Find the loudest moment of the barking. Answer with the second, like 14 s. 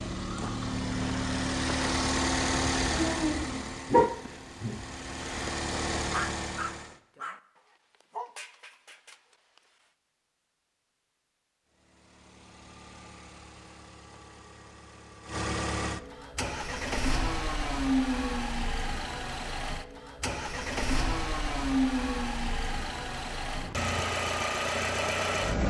4 s.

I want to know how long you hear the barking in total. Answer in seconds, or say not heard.
7 s.